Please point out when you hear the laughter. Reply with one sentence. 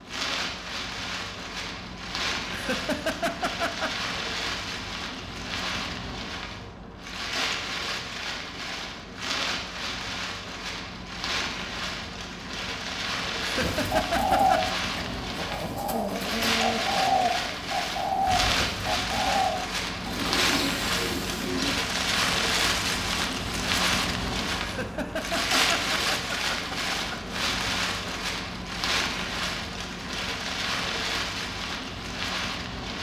You can hear the laughter from 2.5 to 3.9 s, from 13.4 to 14.8 s and from 24.6 to 27.1 s.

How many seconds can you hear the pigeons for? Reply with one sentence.
The pigeons can be heard for 8 seconds in total.